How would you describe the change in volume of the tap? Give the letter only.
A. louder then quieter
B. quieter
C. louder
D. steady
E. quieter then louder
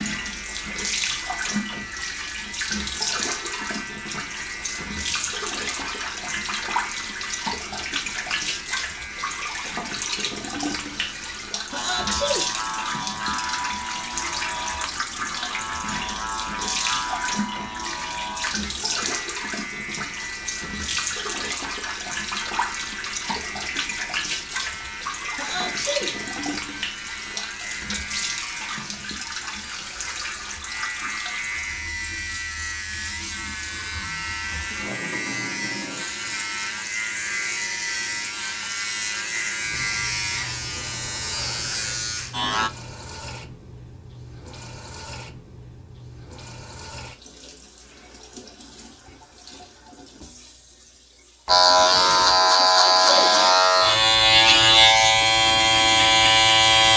B.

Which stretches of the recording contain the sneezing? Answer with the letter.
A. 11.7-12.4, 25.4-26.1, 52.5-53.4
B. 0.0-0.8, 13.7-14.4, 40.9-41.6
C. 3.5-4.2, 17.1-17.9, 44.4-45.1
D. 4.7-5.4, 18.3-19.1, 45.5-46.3
A.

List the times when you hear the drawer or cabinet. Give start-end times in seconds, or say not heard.
not heard.